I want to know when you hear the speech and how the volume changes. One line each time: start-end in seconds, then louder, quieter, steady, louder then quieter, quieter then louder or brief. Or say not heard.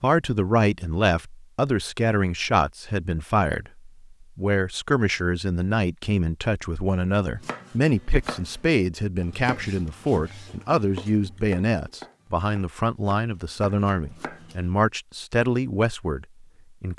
0.0-16.9 steady.